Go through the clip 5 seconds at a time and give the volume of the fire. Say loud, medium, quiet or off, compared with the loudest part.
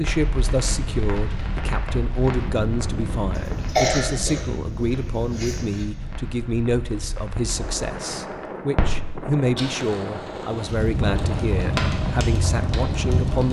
medium, medium, loud.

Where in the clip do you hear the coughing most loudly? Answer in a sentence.
The loudest moment of the coughing is at 4 seconds.